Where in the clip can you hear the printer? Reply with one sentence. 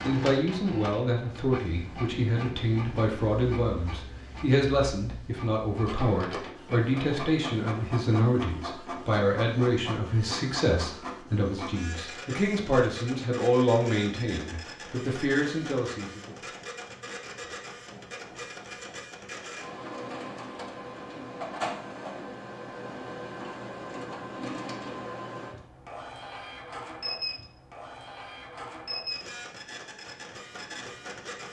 You can hear the printer from 0.0 to 31.4 s.